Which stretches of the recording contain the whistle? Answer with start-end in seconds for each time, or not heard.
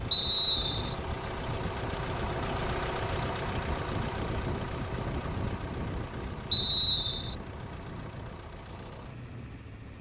0.1-0.9, 6.5-7.3.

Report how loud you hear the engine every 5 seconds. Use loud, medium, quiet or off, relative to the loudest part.
loud, medium.